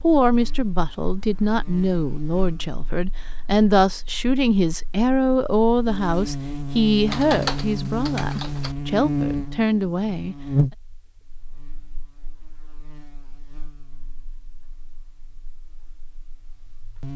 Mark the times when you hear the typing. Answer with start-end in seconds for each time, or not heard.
7.0-8.8.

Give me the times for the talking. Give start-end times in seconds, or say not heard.
0.0-10.3.